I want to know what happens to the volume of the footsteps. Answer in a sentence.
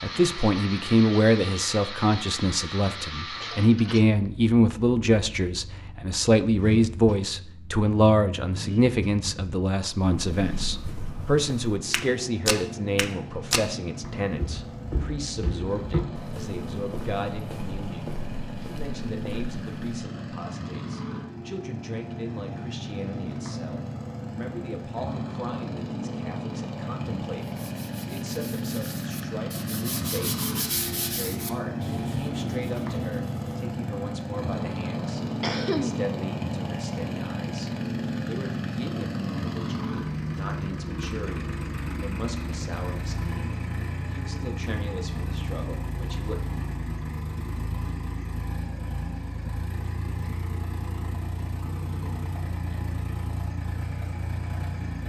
The loudness of the footsteps goes up, then down.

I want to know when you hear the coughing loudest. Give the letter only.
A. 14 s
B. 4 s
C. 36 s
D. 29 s
C.